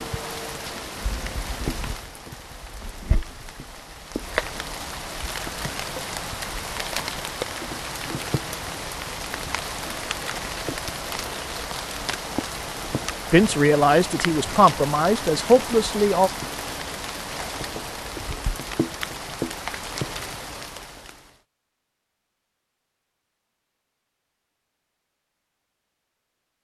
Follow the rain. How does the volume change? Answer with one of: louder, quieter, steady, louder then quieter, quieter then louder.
steady.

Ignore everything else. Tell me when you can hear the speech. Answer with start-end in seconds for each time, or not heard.
13.3-16.3.